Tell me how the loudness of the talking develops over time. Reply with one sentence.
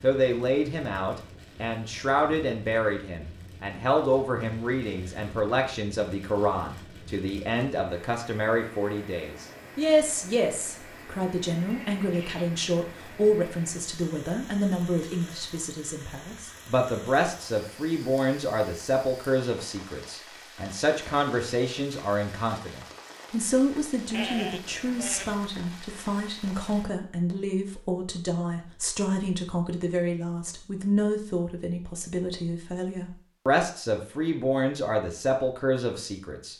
The volume of the talking stays about the same.